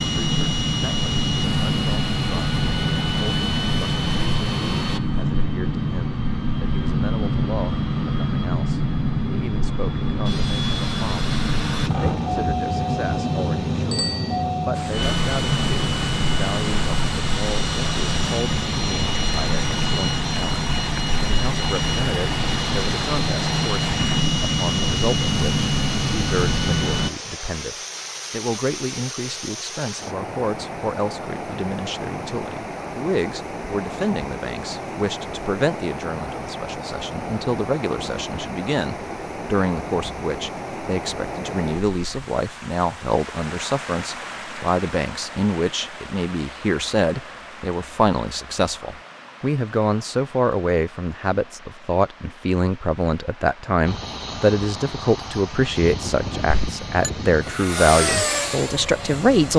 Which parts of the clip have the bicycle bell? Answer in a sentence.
The bicycle bell can be heard from 13.9 to 14.4 s and from 56.5 to 57.1 s.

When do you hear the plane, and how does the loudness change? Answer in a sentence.
The plane can be heard from 0.0 to 27.1 s, at a steady volume; and from 53.9 to 59.5 s, getting louder.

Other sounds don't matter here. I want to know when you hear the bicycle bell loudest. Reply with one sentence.
The loudest moment of the bicycle bell is at 14 seconds.